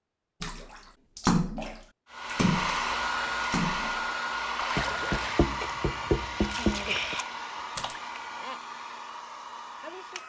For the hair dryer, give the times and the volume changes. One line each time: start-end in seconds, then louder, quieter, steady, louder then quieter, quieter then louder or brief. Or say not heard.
2.1-10.2 quieter.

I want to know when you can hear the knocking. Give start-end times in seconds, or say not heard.
4.8-7.2.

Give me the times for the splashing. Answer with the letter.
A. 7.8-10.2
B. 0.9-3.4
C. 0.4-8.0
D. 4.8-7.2
C.